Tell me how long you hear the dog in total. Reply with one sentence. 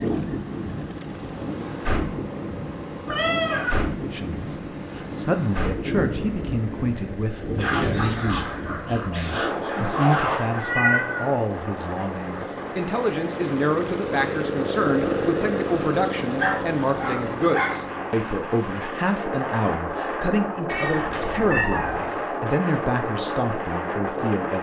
The dog can be heard for 4 seconds in total.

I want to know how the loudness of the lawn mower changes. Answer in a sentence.
The loudness of the lawn mower goes up.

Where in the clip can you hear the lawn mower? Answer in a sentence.
You can hear the lawn mower from 0.0 to 18.2 s.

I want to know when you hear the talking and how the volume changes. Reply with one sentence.
You can hear the talking from 4.1 to 24.5 s, at a steady volume.